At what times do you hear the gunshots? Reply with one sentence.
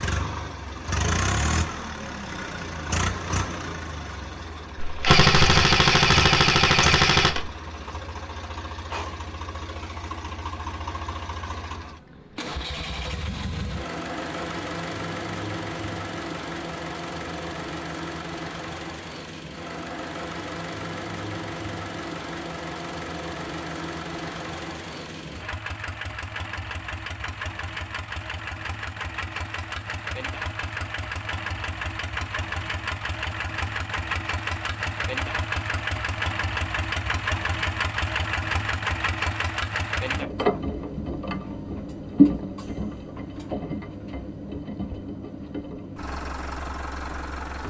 The gunshots can be heard from 4.8 to 7.5 s.